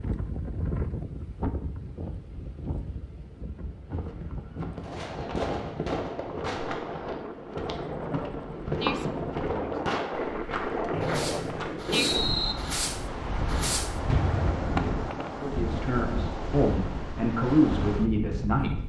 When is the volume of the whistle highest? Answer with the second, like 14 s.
12 s.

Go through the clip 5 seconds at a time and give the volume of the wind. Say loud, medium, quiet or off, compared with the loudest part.
medium, loud, loud, loud.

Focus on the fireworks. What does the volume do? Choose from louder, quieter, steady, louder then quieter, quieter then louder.
quieter then louder.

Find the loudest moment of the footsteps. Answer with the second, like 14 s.
9 s.